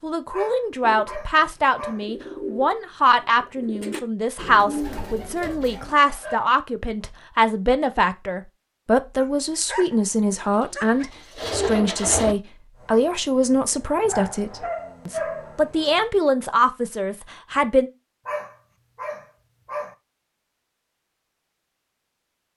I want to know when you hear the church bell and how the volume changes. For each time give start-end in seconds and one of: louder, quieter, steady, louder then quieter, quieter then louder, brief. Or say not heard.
not heard.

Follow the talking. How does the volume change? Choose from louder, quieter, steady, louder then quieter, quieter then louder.
steady.